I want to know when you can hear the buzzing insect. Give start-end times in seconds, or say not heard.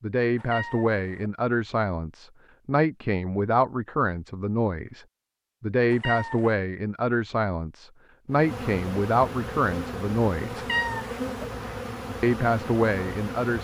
8.3-13.5.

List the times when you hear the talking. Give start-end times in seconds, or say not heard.
0.0-10.7, 12.2-13.5.